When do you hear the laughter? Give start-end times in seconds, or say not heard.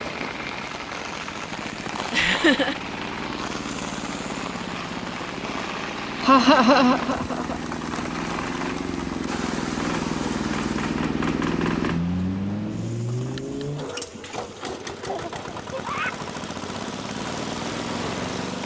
2.1-2.8, 6.2-7.5, 15.1-16.1.